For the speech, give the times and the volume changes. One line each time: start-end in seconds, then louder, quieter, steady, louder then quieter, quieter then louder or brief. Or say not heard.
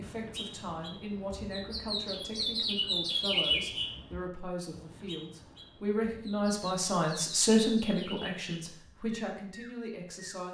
0.0-10.4 louder then quieter.